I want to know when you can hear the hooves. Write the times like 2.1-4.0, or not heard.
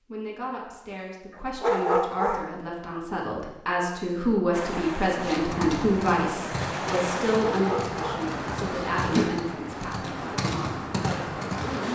5.2-11.8.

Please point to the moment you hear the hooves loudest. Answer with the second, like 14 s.
9 s.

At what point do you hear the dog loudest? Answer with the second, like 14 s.
2 s.